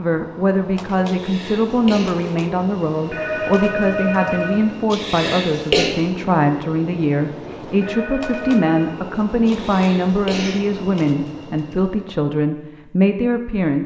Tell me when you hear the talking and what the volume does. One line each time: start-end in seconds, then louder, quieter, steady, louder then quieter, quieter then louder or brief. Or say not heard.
0.0-13.8 steady.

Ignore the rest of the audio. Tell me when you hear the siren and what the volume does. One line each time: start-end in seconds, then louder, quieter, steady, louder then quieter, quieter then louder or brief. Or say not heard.
not heard.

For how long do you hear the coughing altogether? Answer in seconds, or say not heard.
3 s.